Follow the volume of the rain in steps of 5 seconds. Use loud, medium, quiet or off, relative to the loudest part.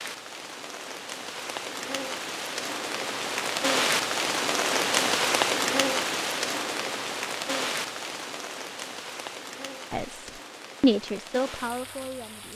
loud, loud, quiet.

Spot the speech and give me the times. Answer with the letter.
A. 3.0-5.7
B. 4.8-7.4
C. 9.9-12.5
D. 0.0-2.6
C.